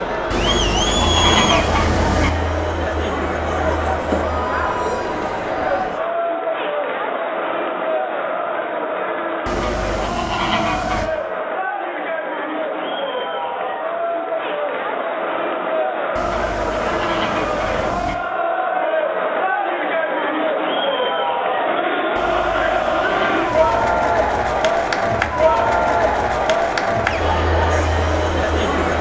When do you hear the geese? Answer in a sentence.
The geese can be heard from 0.3 to 2.3 s, from 9.4 to 11.1 s, from 16.1 to 18.1 s and from 22.1 to 23.9 s.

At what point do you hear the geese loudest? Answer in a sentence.
The volume of the geese peaks at 1 second.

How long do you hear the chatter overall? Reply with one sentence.
The chatter can be heard for 29 seconds in total.